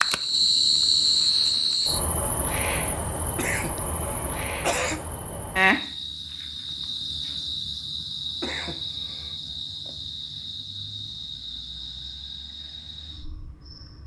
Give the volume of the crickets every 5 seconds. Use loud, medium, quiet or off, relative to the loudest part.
loud, medium, quiet.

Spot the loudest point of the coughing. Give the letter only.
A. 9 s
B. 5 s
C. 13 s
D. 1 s
B.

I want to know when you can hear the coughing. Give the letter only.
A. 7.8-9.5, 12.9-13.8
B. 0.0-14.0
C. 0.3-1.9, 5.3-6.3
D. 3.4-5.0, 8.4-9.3
D.